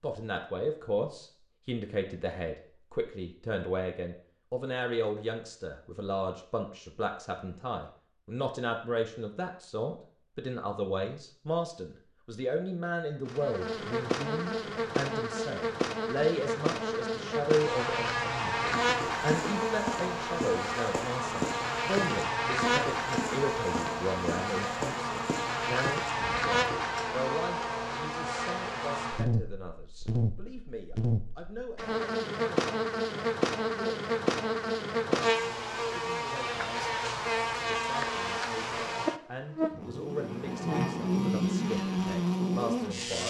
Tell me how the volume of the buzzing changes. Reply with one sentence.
The loudness of the buzzing stays about the same.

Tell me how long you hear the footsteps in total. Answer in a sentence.
You can hear the footsteps for 8 seconds altogether.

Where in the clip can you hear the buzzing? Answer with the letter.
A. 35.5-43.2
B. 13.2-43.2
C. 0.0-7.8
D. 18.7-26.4
B.